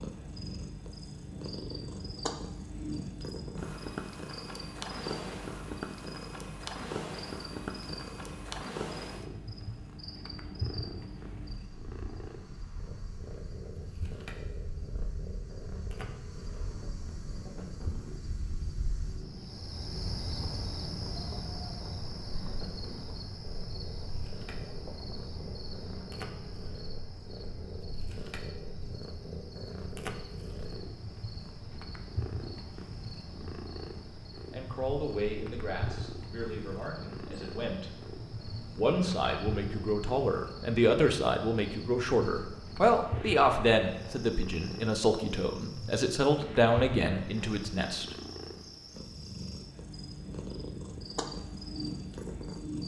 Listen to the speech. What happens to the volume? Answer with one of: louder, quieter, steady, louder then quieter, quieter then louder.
louder.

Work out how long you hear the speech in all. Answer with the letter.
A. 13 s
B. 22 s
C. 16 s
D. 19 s
A.